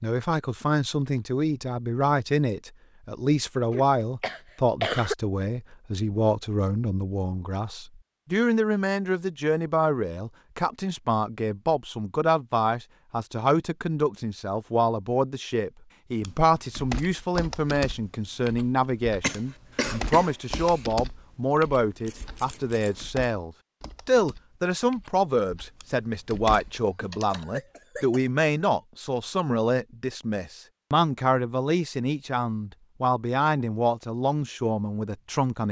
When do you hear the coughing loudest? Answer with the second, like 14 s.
5 s.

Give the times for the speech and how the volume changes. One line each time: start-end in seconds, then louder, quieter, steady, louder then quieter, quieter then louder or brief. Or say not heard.
0.0-35.6 steady.